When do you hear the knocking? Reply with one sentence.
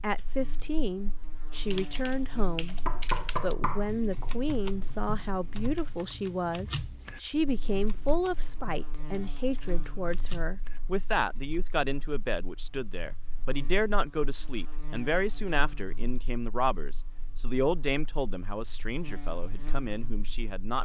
You can hear the knocking from 2.9 to 3.9 s.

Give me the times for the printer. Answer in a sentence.
You can't hear the printer here.